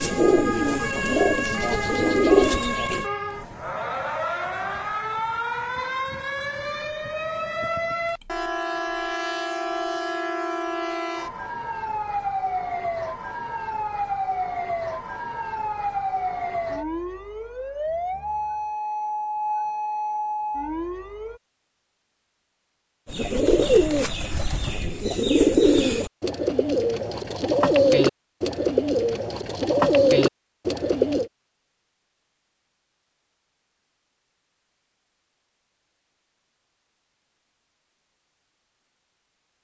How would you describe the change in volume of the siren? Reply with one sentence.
The volume of the siren stays about the same.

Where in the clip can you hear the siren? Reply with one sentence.
You can hear the siren from 0.0 to 21.4 s.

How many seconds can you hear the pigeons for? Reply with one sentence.
The pigeons can be heard for 11 seconds in total.